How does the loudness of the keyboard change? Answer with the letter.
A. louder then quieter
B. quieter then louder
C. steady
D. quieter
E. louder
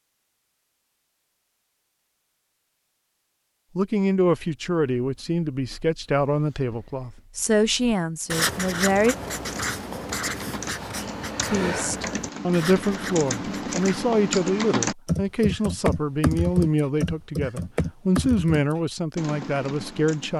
A.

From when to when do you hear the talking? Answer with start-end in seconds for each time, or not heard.
3.8-9.2, 11.5-20.3.